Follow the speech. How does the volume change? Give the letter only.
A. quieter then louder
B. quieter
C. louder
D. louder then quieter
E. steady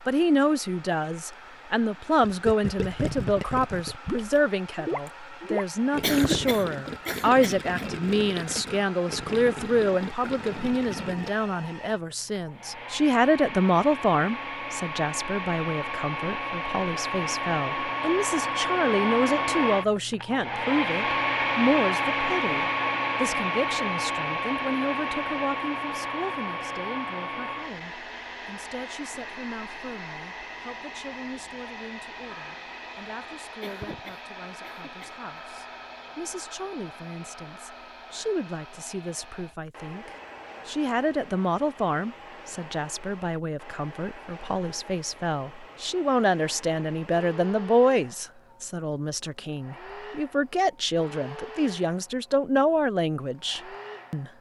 A.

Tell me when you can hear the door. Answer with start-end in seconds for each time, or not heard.
not heard.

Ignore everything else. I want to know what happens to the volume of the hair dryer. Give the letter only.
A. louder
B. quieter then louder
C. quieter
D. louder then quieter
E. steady
D.